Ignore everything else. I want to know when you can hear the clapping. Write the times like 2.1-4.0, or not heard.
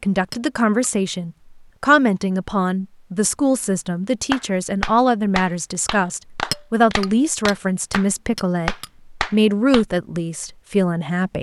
4.3-9.8.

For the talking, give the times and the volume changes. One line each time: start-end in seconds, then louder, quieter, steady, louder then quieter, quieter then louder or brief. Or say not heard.
0.0-11.3 steady.